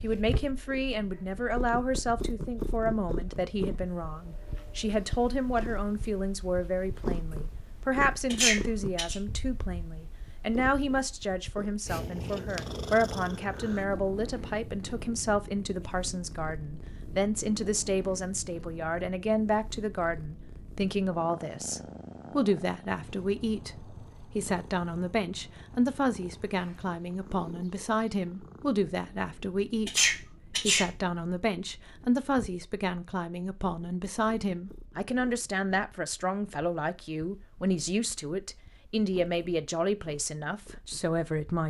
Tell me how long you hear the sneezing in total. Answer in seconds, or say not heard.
2 s.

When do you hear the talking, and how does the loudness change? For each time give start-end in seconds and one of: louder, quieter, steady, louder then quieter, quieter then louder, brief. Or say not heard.
0.0-41.6 steady.